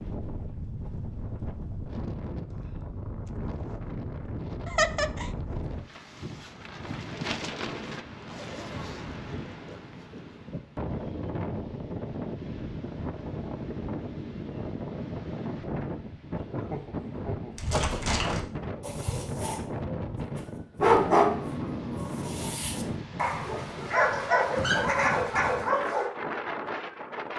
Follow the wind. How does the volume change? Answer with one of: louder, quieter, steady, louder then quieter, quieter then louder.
steady.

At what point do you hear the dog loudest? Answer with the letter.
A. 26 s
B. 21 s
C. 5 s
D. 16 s
B.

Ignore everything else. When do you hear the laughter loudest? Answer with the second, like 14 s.
5 s.